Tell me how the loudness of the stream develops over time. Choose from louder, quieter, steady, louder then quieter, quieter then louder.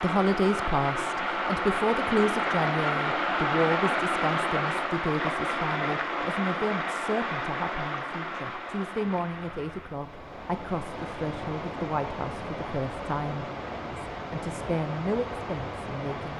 quieter.